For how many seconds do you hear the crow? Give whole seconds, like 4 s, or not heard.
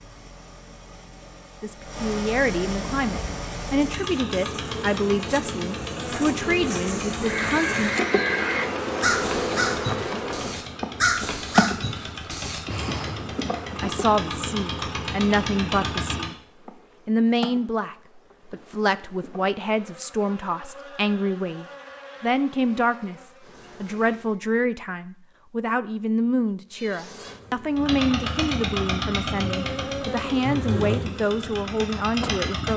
6 s.